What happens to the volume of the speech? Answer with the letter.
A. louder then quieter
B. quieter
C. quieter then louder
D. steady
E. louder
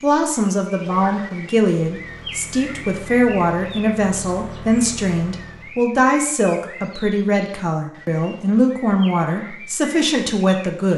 D.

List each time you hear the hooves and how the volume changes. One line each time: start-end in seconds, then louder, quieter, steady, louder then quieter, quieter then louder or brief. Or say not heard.
not heard.